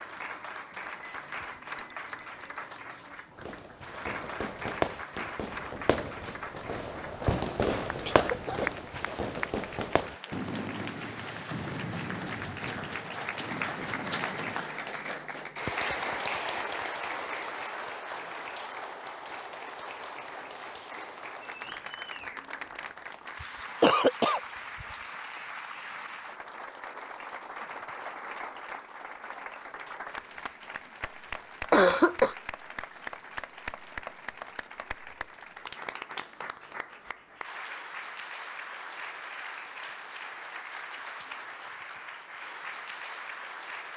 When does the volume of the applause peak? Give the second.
16 s.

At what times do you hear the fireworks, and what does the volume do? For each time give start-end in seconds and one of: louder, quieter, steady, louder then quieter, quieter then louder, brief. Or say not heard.
3.4-14.7 quieter.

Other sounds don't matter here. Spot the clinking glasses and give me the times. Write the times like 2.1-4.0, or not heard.
0.8-2.6.